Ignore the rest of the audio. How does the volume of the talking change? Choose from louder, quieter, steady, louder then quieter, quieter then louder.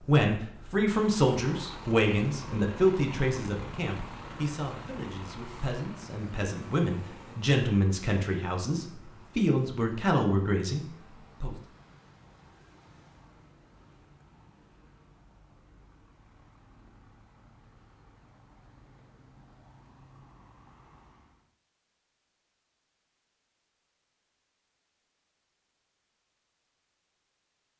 quieter then louder.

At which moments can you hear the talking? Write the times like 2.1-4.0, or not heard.
0.0-11.6.